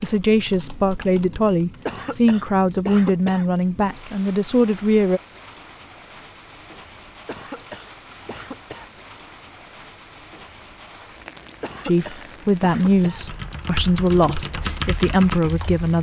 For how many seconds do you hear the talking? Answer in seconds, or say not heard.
9 s.